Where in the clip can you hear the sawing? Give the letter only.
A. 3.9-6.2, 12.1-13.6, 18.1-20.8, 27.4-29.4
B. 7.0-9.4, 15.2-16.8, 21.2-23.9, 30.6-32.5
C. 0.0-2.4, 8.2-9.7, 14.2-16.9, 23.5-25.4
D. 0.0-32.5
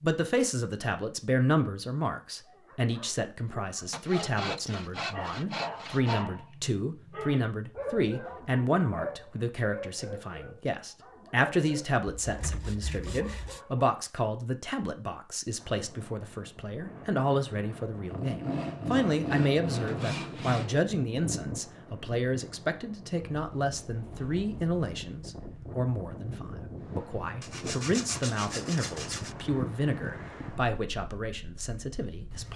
A.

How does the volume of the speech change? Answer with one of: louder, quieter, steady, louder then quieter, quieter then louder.
steady.